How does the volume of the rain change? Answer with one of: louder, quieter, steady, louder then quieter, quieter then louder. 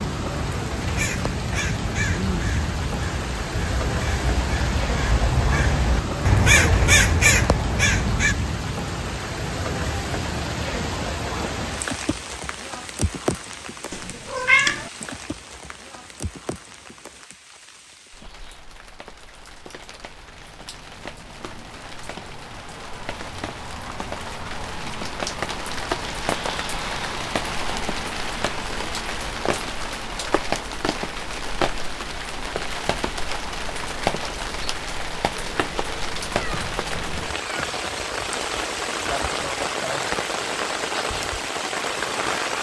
quieter then louder.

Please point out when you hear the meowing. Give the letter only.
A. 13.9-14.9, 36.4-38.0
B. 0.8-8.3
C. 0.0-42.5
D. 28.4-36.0
A.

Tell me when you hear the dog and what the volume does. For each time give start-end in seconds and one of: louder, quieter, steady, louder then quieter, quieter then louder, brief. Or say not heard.
not heard.